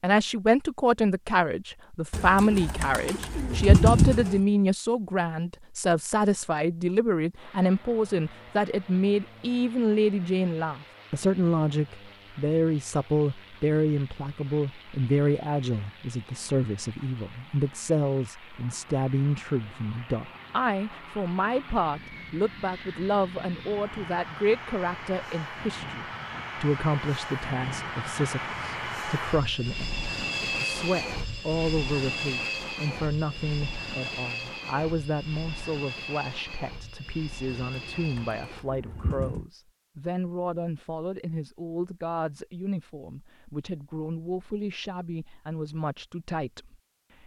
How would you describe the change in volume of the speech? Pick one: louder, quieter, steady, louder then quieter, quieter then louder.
quieter.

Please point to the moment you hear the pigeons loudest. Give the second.
4 s.